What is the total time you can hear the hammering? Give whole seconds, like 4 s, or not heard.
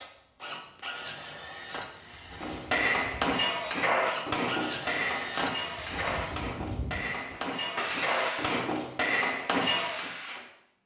8 s.